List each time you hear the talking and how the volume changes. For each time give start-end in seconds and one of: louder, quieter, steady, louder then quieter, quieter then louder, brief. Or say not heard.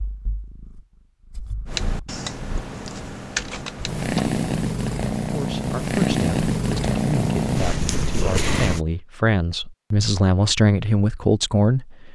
5.3-12.0 louder.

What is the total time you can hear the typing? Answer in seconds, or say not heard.
3 s.